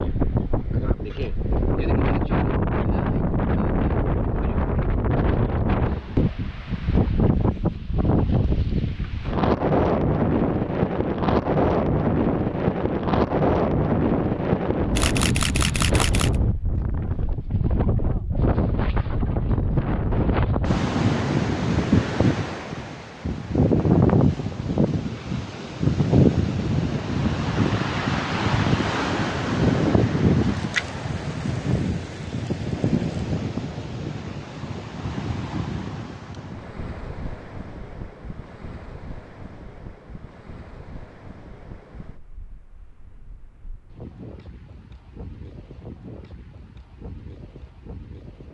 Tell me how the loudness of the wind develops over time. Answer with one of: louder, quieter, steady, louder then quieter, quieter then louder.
quieter.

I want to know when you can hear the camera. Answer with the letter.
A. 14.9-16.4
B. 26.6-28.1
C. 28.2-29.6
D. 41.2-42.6
A.